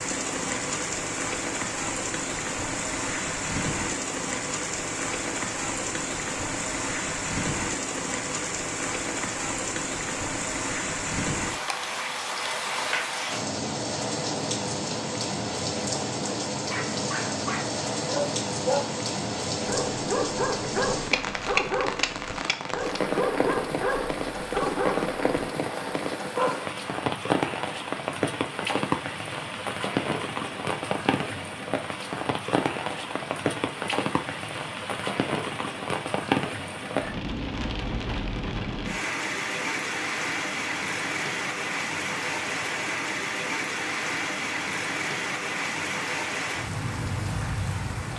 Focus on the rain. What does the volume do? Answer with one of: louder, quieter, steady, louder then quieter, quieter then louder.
steady.